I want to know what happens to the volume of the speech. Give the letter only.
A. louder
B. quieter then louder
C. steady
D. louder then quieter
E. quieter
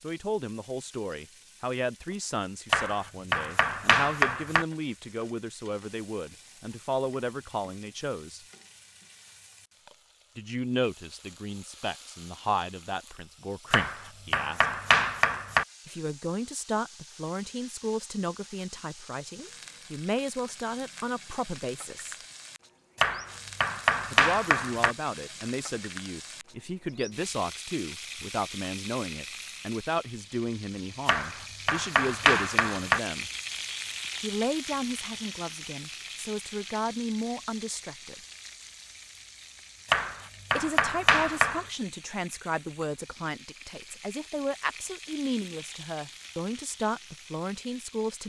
C.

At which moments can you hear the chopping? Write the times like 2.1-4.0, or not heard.
2.7-4.7, 13.7-15.7, 22.9-24.9, 31.1-33.0, 39.9-41.6.